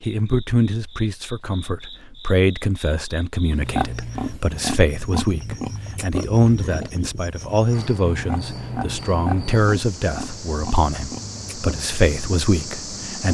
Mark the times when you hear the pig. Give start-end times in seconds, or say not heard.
3.5-13.0.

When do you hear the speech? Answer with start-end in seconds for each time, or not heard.
0.0-13.3.